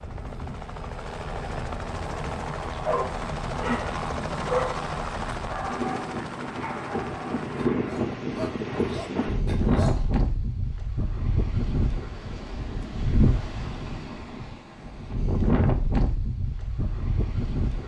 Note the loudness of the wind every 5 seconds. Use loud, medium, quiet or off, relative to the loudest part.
quiet, loud, loud, loud.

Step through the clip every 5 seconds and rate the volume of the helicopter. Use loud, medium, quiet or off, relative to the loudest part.
loud, loud, off, off.